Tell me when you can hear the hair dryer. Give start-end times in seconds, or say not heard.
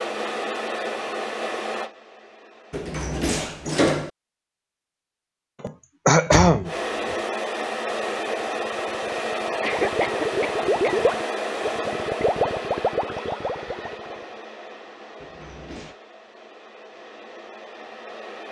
0.0-3.8, 6.7-18.4.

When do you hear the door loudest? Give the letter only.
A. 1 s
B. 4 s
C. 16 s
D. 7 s
B.